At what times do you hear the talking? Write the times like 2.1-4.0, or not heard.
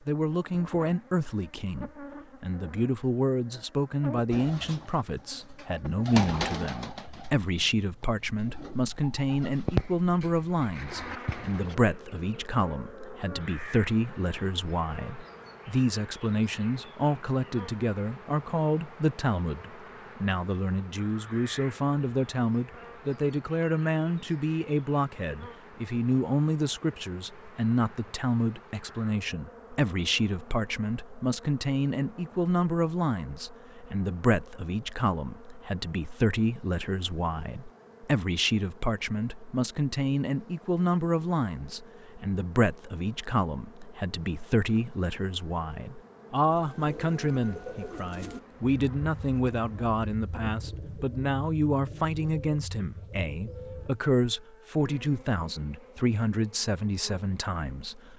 0.1-58.1.